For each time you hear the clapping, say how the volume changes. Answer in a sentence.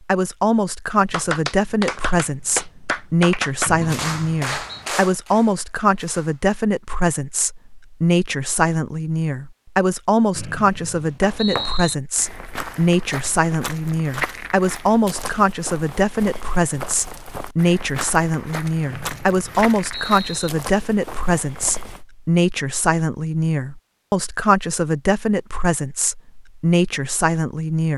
The clapping can be heard from 1.1 to 6.5 s, getting quieter.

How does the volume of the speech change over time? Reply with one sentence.
The volume of the speech stays about the same.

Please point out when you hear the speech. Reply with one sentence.
The speech can be heard from 0.1 to 27.9 s.